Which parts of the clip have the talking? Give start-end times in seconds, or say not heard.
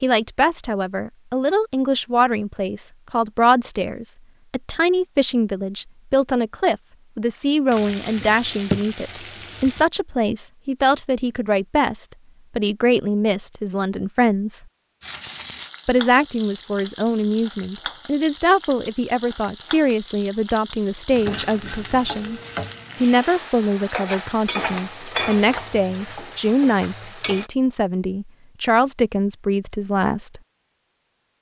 0.0-14.6, 15.8-22.4, 23.0-30.4.